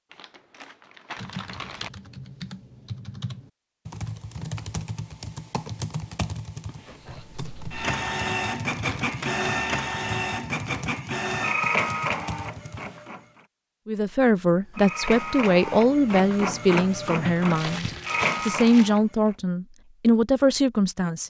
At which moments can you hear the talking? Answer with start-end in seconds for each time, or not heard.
13.8-21.2.